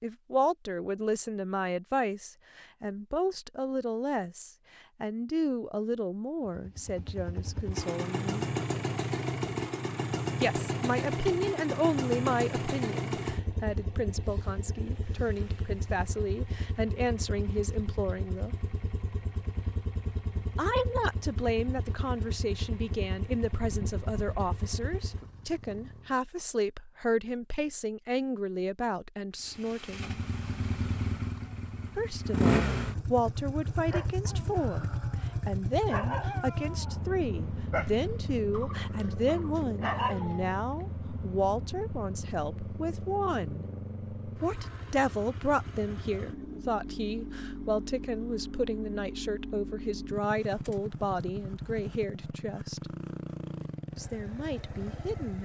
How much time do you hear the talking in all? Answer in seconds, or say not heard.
48 s.